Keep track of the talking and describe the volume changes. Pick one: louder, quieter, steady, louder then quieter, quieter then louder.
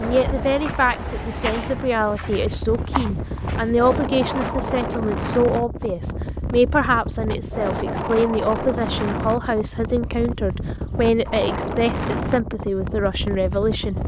steady.